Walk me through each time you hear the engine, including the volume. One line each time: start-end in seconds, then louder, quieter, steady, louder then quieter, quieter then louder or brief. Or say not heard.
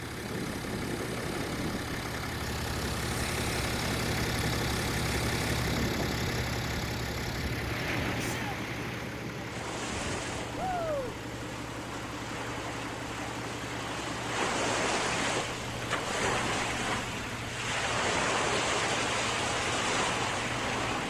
0.0-21.0 quieter.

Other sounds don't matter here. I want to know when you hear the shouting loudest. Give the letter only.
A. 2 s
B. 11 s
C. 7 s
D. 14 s
B.